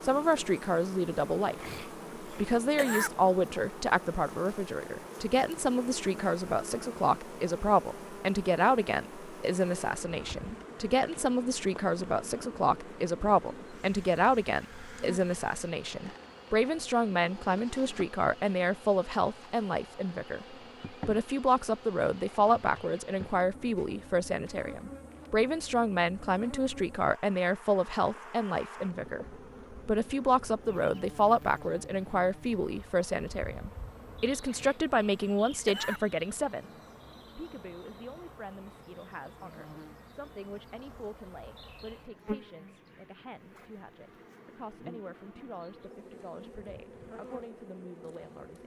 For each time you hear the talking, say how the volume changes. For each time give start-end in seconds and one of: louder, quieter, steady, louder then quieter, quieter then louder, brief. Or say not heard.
0.0-48.6 quieter.